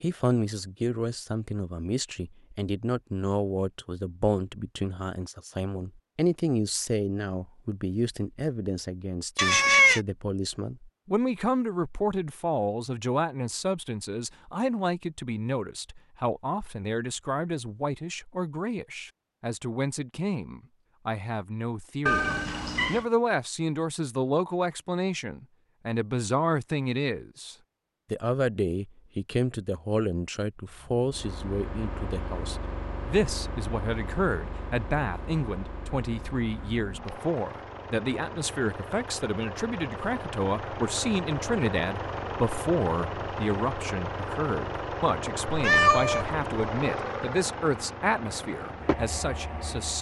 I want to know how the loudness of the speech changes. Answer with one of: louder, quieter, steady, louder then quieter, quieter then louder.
steady.